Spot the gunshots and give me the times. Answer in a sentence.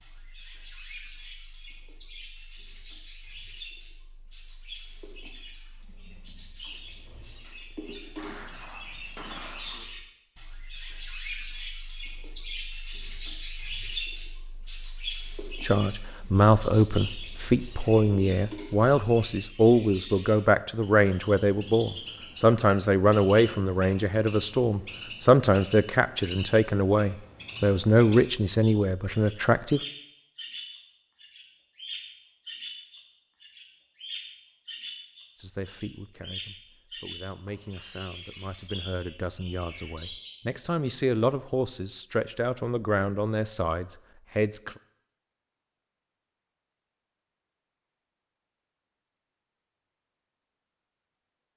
The gunshots can be heard from 8.2 to 9.8 s.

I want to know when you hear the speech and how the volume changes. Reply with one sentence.
The speech can be heard from 15.6 to 29.8 s, at a steady volume; and from 35.4 to 44.8 s, getting louder.